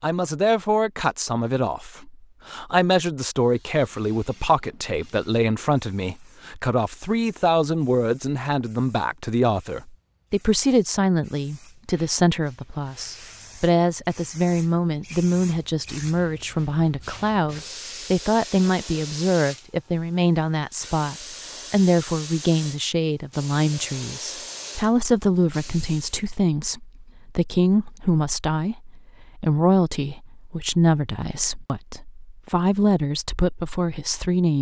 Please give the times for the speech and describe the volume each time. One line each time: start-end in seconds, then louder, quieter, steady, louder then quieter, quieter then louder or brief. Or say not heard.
0.0-34.5 steady.